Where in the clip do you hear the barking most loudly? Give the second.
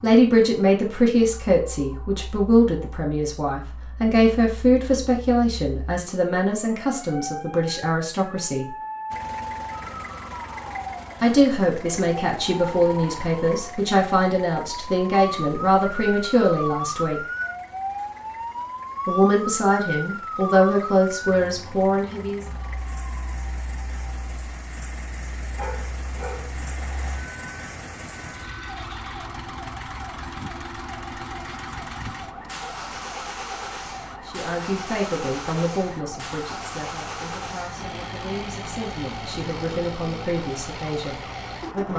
26 s.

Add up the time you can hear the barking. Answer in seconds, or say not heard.
2 s.